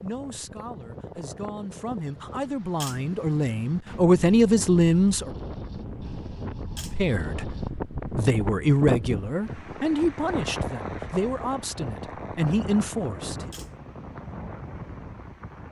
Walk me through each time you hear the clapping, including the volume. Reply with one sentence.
The clapping can't be heard in this clip.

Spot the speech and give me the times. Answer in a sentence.
The speech can be heard from 0.0 to 5.3 s and from 6.8 to 13.5 s.